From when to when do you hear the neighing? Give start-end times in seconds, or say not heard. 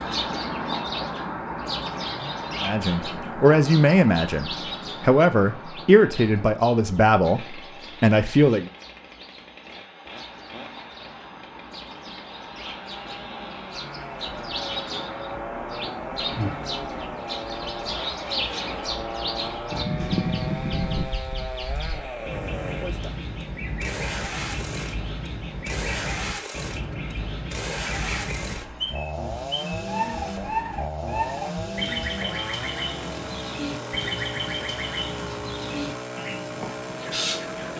19.7-21.1.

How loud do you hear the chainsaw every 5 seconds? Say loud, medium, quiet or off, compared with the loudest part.
medium, medium, medium, loud, loud, loud, loud, loud.